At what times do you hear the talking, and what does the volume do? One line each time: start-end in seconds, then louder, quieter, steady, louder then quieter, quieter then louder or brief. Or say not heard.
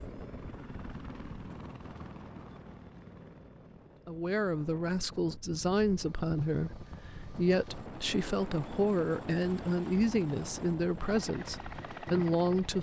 4.0-12.7 steady.